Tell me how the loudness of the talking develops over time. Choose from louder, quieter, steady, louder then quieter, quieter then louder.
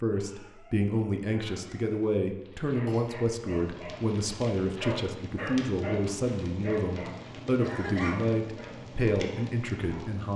steady.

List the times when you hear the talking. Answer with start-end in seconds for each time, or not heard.
0.0-10.3.